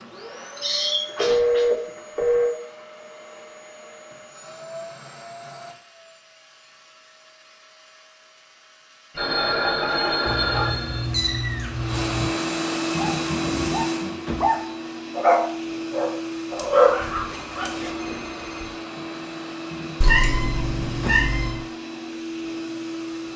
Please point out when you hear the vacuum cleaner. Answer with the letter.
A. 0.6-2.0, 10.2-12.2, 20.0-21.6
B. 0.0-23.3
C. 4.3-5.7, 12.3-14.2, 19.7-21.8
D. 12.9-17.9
B.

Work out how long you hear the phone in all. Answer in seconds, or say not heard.
5 s.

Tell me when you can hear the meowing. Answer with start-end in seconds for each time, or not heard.
0.6-2.0, 10.2-12.2, 20.0-21.6.